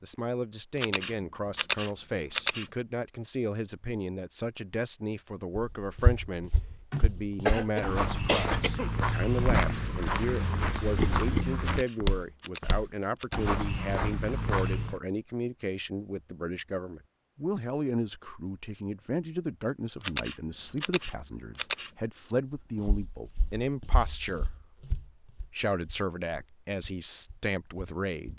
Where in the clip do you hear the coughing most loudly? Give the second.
8 s.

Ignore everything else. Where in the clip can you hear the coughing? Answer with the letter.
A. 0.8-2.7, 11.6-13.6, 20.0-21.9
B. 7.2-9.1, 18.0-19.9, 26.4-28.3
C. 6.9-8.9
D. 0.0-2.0
C.